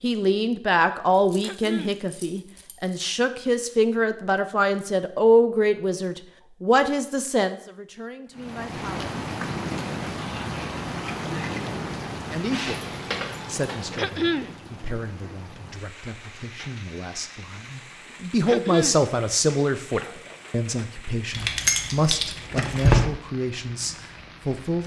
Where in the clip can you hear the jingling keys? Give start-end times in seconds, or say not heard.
1.1-2.9, 12.5-14.2, 21.3-23.1.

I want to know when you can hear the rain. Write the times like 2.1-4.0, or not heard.
8.3-24.8.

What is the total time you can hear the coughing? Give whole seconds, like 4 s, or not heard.
2 s.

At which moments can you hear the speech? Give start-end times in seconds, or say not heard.
0.0-9.1, 12.3-24.8.